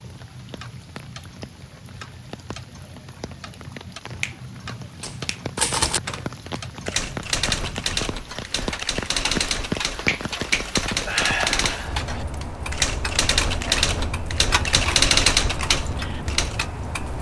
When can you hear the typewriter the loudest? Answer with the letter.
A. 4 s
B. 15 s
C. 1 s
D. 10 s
B.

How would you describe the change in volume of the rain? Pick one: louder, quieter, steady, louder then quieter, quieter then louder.
louder.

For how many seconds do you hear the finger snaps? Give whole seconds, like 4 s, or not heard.
3 s.